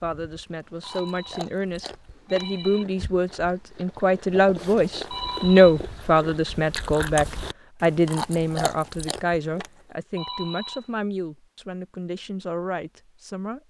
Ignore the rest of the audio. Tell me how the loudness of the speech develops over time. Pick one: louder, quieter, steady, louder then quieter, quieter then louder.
louder then quieter.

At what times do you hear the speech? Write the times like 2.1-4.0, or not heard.
0.0-13.6.